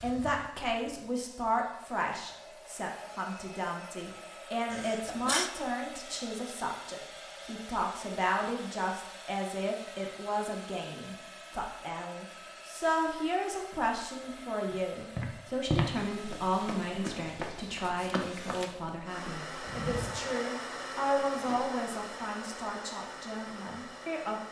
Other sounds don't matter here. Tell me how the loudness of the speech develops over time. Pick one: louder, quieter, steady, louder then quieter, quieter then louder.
steady.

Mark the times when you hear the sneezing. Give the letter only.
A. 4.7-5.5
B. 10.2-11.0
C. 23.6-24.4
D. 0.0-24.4
A.